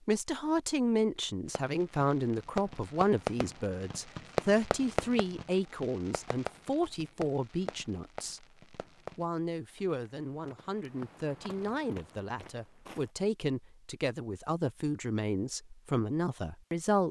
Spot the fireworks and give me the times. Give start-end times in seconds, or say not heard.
1.4-9.2.